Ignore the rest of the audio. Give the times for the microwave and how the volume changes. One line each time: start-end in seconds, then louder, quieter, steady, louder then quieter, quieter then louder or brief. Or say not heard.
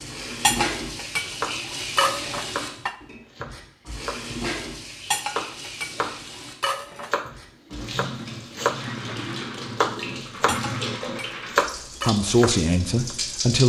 not heard.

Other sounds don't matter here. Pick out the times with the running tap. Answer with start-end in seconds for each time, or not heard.
0.0-13.6.